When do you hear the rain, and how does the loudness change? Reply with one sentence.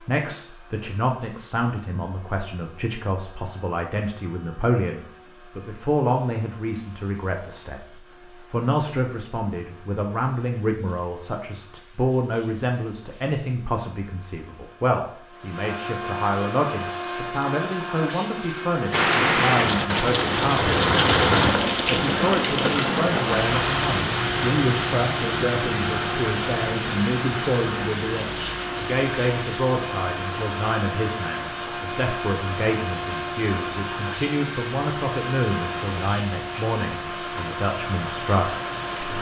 The rain can be heard from 18.9 to 39.1 s, getting quieter.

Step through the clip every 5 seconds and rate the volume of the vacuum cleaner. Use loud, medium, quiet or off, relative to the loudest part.
quiet, quiet, quiet, loud, loud, loud, loud, loud.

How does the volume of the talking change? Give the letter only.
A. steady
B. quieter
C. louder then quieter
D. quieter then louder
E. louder
A.